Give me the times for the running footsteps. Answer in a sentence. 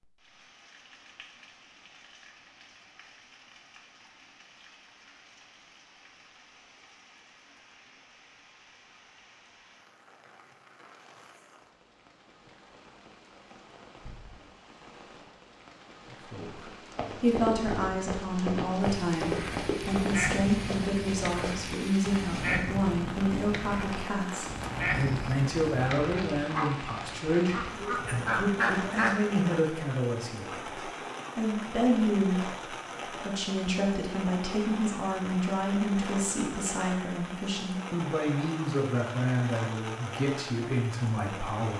The running footsteps can be heard from 16.9 to 22.3 s.